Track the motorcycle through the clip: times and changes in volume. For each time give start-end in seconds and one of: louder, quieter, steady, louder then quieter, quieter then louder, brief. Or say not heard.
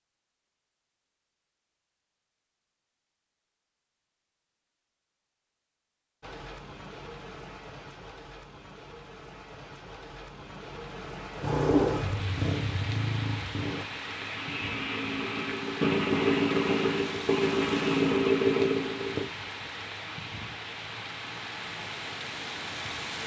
11.4-19.3 quieter then louder.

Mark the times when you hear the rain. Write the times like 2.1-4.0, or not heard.
6.2-23.2.